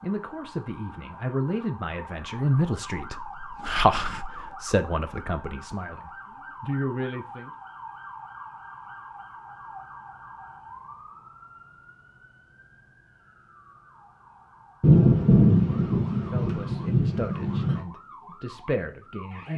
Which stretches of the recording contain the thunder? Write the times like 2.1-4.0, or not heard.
14.8-17.8.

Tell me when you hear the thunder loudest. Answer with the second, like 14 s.
15 s.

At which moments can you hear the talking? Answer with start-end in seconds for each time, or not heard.
0.0-7.5, 16.2-19.5.